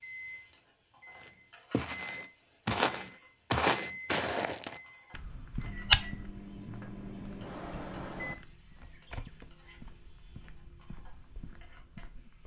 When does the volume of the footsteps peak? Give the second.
6 s.